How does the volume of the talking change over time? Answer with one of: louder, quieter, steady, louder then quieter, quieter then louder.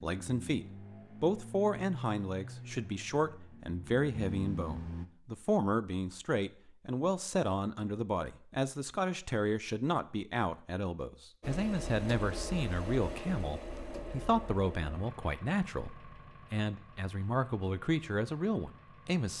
steady.